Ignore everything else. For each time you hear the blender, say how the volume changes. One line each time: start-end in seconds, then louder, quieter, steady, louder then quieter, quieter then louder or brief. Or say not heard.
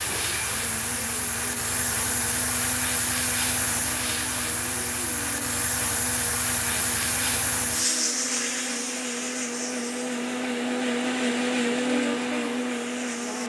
0.0-13.4 louder.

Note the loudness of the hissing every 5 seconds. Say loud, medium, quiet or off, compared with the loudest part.
loud, loud, medium.